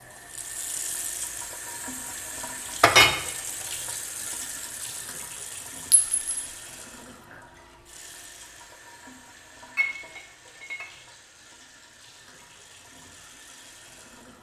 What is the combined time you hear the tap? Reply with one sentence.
The tap can be heard for 14 seconds in total.